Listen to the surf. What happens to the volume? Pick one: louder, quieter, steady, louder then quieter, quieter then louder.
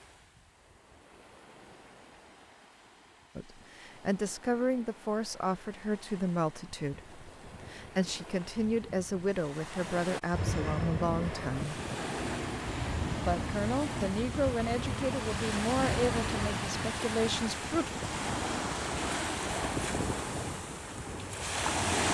louder.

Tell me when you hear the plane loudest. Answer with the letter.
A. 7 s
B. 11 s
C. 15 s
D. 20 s
B.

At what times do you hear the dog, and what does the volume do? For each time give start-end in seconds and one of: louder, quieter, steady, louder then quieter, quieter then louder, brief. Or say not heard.
not heard.